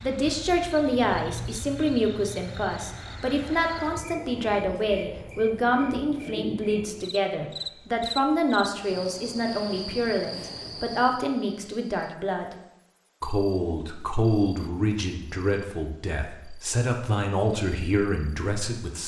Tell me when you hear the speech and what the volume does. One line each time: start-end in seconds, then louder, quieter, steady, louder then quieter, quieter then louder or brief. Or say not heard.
0.0-12.6 steady
13.2-19.0 quieter then louder.